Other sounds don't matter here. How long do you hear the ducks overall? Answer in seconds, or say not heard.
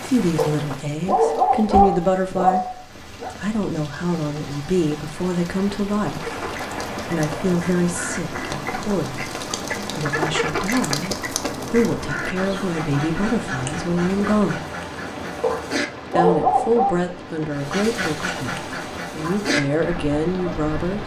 13 s.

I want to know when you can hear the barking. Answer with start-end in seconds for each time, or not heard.
0.3-3.3, 15.4-16.9.